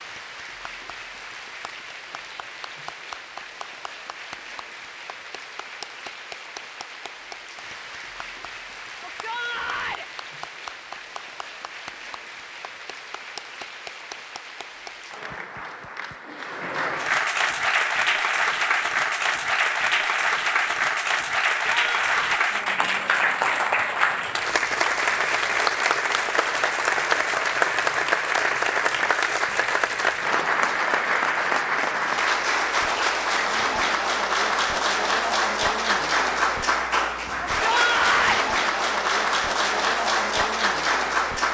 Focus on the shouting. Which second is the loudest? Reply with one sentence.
The loudest moment of the shouting is at 38 seconds.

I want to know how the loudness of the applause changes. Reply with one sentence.
The volume of the applause goes up.